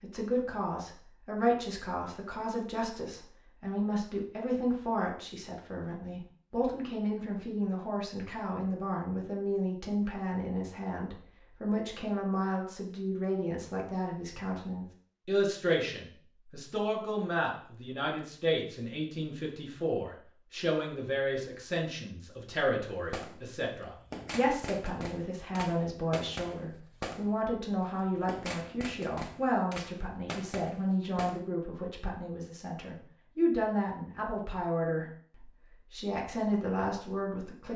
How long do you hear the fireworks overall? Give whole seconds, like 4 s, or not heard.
8 s.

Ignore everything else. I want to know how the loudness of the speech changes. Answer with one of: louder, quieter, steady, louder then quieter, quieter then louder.
steady.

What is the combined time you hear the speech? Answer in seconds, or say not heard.
38 s.